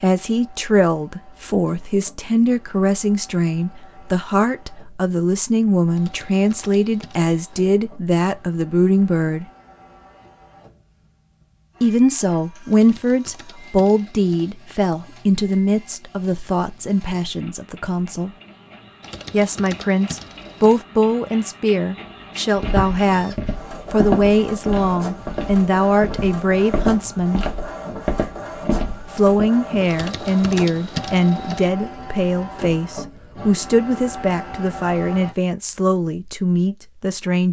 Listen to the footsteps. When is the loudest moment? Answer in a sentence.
The volume of the footsteps peaks at 24 seconds.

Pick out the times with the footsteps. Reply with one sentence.
The footsteps can be heard from 22.6 to 29.5 s.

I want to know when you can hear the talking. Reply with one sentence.
You can hear the talking from 0.0 to 9.4 s, from 11.8 to 18.3 s, from 19.3 to 27.4 s and from 29.1 to 37.4 s.